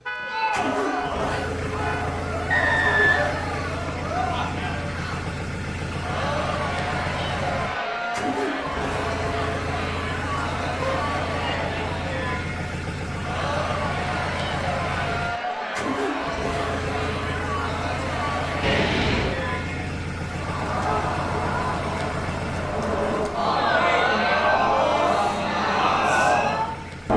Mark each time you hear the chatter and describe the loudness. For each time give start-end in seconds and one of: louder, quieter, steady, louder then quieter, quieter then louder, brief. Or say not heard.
0.1-27.1 louder.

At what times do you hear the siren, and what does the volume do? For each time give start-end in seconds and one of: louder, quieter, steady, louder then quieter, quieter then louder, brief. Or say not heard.
not heard.